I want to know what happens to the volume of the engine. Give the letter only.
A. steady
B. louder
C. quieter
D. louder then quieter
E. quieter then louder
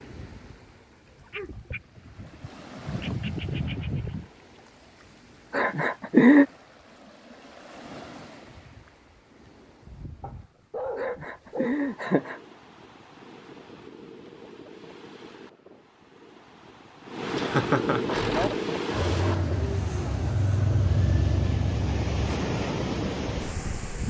B.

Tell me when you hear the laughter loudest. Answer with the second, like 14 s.
6 s.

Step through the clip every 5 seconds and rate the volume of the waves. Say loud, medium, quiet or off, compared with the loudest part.
quiet, quiet, quiet, loud, loud.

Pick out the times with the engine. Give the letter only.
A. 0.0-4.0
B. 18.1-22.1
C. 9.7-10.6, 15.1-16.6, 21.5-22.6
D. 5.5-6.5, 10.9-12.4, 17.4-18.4
B.